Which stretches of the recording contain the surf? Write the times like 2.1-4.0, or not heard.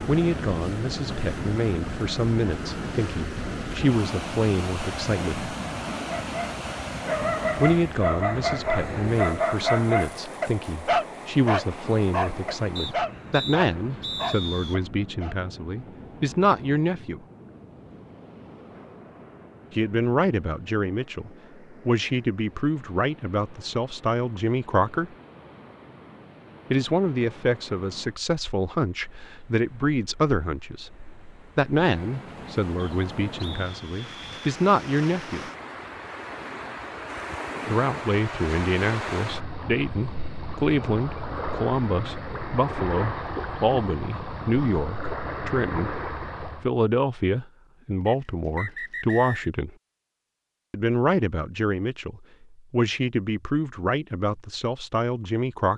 0.0-46.7.